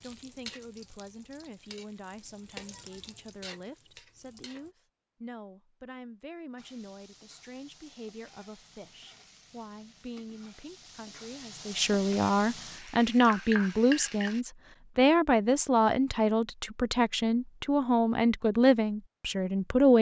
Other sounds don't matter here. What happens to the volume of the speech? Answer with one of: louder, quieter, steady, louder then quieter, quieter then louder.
louder.